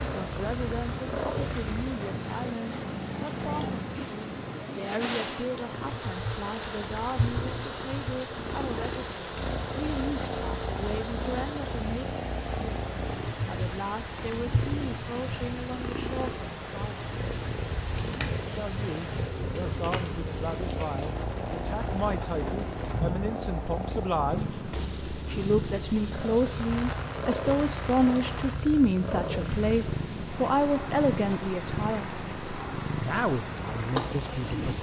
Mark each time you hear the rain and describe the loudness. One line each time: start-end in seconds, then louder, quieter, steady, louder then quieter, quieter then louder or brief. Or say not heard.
0.0-34.7 steady.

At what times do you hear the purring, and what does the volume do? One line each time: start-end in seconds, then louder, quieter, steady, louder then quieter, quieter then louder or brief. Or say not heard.
0.0-34.7 steady.